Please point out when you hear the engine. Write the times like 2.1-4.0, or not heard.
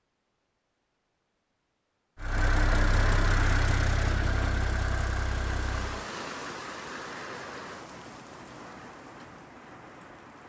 2.1-6.0.